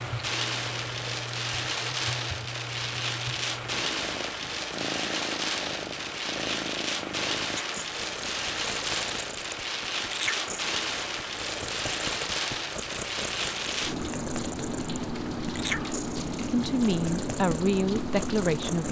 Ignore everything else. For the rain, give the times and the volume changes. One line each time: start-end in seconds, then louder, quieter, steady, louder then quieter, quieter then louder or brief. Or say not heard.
0.0-18.8 steady.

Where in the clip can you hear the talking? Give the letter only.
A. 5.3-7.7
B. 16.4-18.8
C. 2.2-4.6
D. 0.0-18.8
B.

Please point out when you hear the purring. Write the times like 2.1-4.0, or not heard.
0.0-18.8.